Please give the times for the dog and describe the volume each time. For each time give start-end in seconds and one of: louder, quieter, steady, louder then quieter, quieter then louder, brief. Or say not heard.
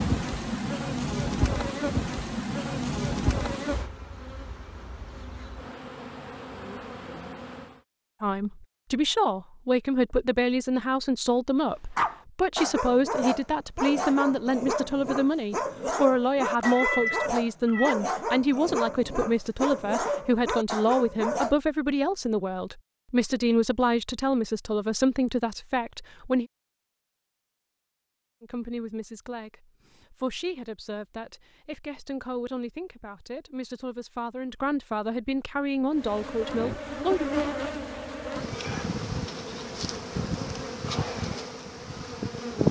11.9-21.6 steady.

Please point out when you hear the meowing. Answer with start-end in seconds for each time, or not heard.
16.6-17.9.